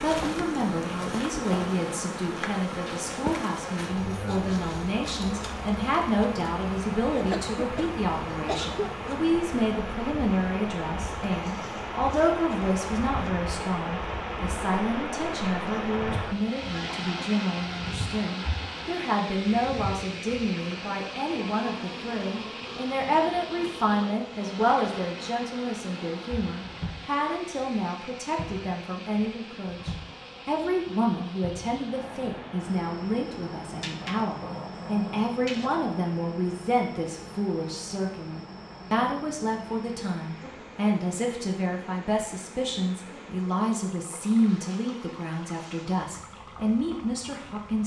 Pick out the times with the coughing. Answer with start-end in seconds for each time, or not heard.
7.3-8.9.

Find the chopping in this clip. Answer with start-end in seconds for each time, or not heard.
not heard.